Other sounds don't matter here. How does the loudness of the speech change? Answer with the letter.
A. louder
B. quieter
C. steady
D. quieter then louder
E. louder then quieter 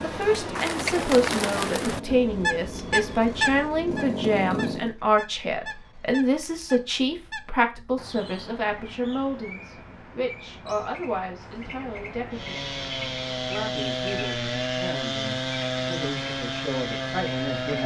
B.